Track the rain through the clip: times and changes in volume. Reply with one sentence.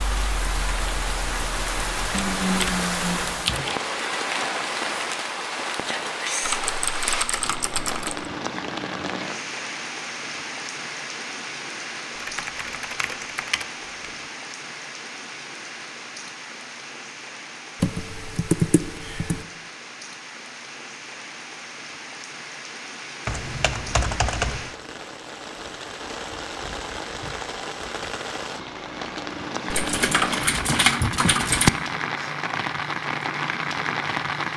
You can hear the rain from 0.0 to 34.5 s, getting quieter then louder.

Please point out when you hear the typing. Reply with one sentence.
You can hear the typing from 2.1 to 3.8 s, from 6.4 to 8.2 s, from 12.2 to 14.1 s, from 17.8 to 19.4 s, from 23.2 to 24.8 s and from 29.7 to 31.7 s.